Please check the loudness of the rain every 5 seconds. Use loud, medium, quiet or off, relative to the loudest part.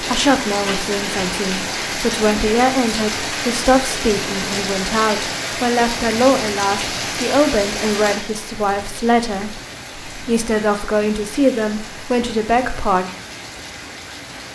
loud, loud, medium.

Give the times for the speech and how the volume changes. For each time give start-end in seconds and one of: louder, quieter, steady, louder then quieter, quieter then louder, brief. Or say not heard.
0.0-13.1 steady.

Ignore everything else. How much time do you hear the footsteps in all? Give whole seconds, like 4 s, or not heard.
not heard.